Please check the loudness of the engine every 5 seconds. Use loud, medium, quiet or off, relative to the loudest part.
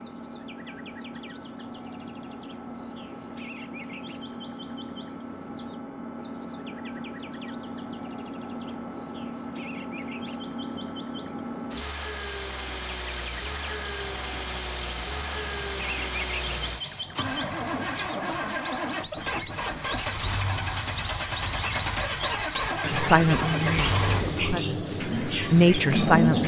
quiet, medium, medium, medium, loud, loud.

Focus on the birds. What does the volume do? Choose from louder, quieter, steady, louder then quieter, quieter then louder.
louder.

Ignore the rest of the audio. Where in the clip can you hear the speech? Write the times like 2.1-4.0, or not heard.
22.9-26.4.